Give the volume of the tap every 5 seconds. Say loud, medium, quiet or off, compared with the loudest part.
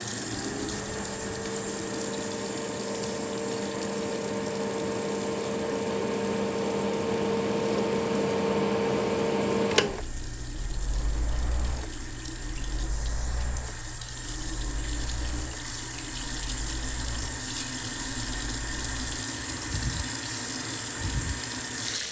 loud, medium, medium, loud, loud.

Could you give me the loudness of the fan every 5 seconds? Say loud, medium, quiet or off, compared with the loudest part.
medium, loud, quiet, quiet, quiet.